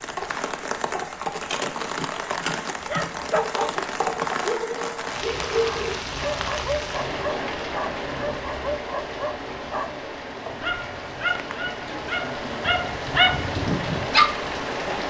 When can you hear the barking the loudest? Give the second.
14 s.